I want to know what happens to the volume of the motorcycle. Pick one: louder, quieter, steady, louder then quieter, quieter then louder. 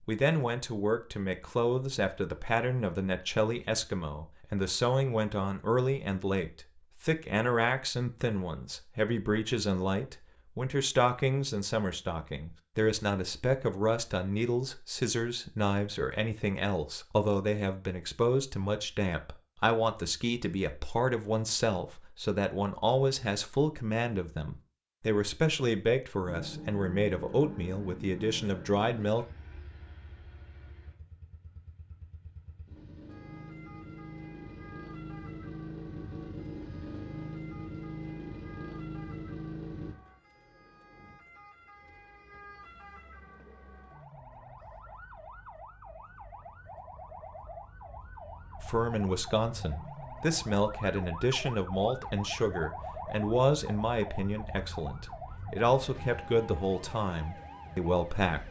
quieter then louder.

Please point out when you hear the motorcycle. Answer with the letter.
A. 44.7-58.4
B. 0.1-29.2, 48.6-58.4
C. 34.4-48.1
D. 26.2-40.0
D.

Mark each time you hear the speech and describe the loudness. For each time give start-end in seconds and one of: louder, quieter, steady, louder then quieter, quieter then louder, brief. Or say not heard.
0.1-29.2 steady
48.6-58.4 steady.